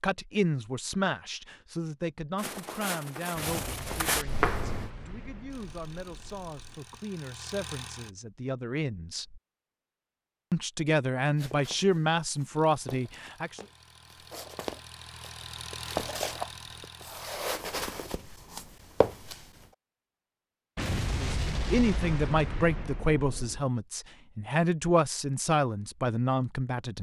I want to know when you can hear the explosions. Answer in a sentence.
You can hear the explosions from 3.3 to 6.8 s and from 20.8 to 23.6 s.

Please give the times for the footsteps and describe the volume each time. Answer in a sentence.
You can hear the footsteps briefly from 2.4 to 4.9 s; and from 11.3 to 19.5 s, getting louder.